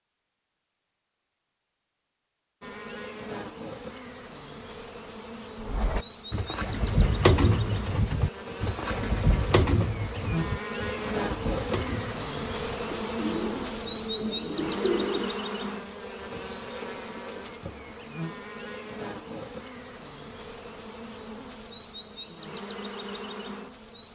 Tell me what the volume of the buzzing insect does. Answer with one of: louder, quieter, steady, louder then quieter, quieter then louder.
louder then quieter.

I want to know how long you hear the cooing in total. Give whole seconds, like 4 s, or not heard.
10 s.